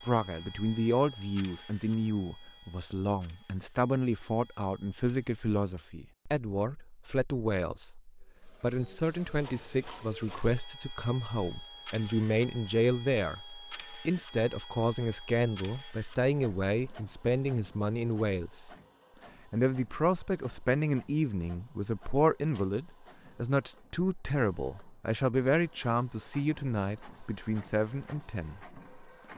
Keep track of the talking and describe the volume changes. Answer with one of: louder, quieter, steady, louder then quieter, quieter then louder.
steady.